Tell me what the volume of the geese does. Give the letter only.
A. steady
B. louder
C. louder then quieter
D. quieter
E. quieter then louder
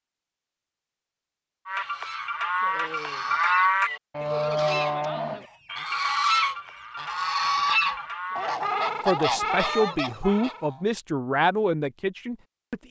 B.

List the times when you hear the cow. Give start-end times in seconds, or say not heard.
1.6-8.7.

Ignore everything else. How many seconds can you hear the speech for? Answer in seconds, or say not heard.
4 s.